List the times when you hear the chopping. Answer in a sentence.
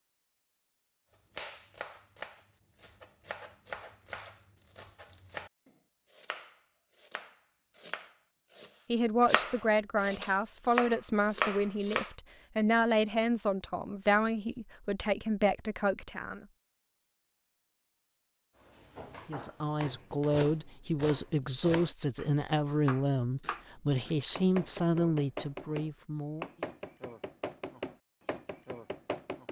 You can hear the chopping from 1.3 to 12.1 s and from 18.8 to 29.4 s.